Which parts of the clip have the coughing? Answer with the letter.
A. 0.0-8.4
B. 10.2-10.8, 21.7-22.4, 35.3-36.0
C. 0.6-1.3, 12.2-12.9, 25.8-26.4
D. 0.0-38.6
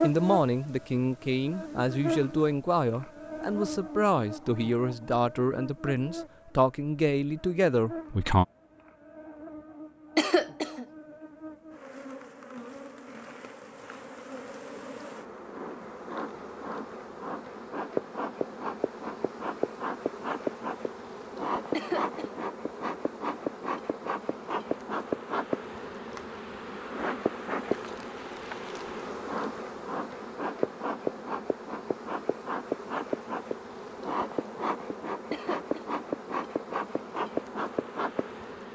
B.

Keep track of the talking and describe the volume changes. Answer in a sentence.
The loudness of the talking stays about the same.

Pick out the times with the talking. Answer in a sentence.
You can hear the talking from 0.0 to 8.4 s.